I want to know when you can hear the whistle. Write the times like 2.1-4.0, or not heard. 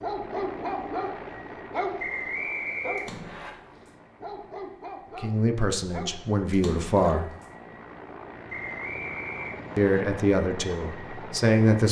1.9-3.5, 8.4-10.0.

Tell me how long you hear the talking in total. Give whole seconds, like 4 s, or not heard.
4 s.